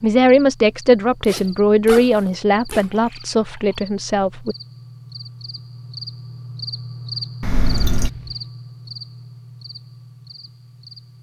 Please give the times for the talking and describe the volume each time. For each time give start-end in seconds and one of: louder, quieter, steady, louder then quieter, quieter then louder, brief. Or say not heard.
0.0-4.5 quieter.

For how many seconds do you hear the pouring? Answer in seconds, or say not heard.
2 s.